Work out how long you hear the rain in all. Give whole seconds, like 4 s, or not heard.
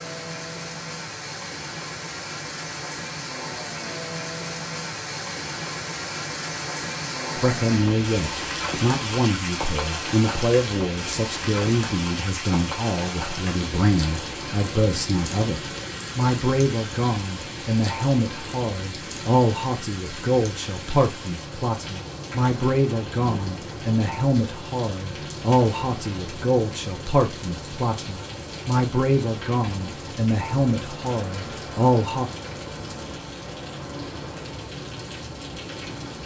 36 s.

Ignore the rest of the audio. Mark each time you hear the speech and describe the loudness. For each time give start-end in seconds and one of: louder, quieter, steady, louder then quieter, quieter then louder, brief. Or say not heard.
7.3-32.2 steady.